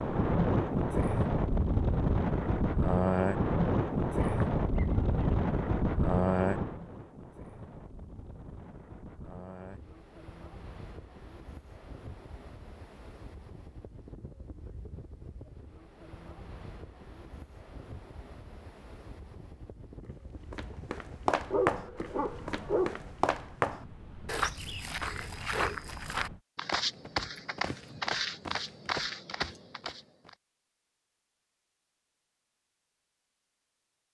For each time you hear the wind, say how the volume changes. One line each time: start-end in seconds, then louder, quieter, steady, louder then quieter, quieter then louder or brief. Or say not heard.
0.0-26.4 quieter.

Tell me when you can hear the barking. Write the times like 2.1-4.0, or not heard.
4.2-5.3, 21.5-23.0.